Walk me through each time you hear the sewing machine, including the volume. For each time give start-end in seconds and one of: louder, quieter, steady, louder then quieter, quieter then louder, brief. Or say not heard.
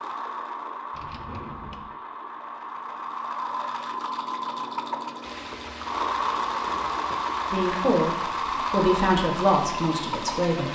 0.0-10.7 louder.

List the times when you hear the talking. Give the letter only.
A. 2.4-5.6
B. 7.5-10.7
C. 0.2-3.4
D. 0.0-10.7
B.